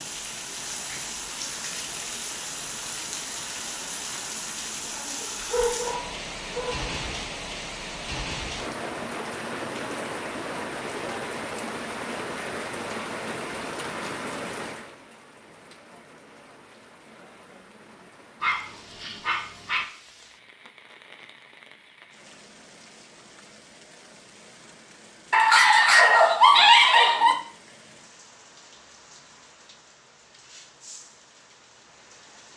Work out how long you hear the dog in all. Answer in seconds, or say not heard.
5 s.